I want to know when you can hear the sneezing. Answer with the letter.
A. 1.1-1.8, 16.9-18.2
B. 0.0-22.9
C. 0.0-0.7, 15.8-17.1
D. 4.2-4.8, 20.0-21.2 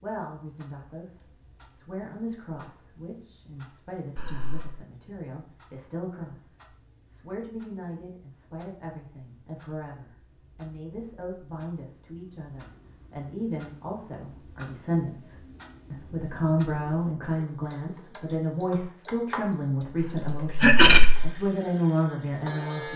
D.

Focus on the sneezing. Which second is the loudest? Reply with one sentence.
The volume of the sneezing peaks at 21 seconds.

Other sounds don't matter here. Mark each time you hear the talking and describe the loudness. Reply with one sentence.
The talking can be heard from 0.0 to 22.9 s, getting louder.